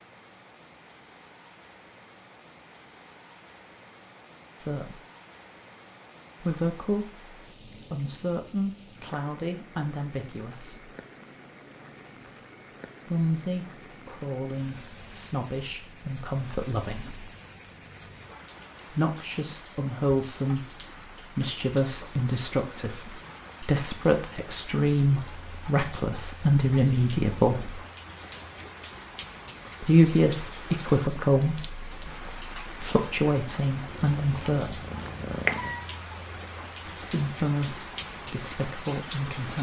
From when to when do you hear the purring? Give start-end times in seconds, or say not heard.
33.8-36.0.